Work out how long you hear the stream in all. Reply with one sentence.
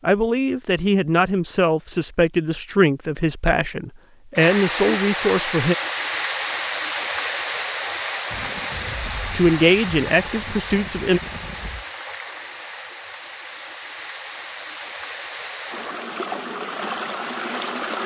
The stream can be heard for 14 seconds in total.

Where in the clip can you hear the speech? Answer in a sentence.
You can hear the speech from 0.0 to 5.8 s and from 9.3 to 11.2 s.